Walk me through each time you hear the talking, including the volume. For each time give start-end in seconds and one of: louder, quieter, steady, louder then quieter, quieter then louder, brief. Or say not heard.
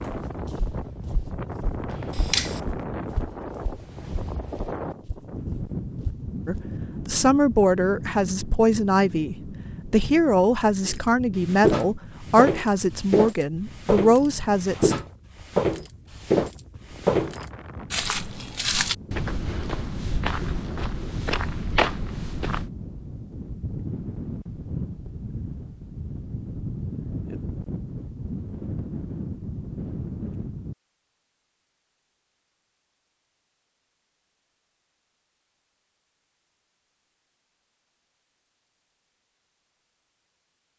6.5-14.9 steady.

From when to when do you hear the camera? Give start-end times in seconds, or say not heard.
1.9-2.6.